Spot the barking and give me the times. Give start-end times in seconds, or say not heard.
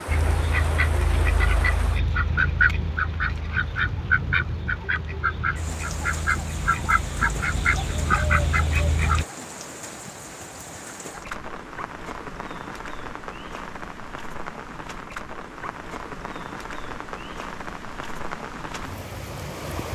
not heard.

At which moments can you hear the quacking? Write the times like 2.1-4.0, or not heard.
0.1-9.2.